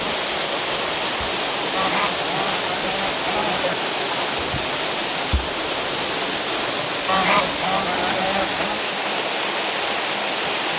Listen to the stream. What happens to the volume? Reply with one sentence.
The volume of the stream stays about the same.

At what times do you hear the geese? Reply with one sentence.
The geese can be heard from 1.7 to 3.8 s and from 7.0 to 8.8 s.